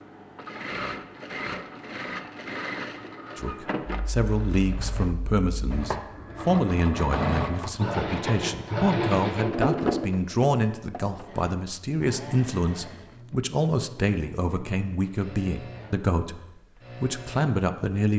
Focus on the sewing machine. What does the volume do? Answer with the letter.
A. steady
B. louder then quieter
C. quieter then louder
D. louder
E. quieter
B.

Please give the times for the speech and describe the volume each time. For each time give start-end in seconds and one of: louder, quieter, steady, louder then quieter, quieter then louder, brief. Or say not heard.
3.4-18.1 steady.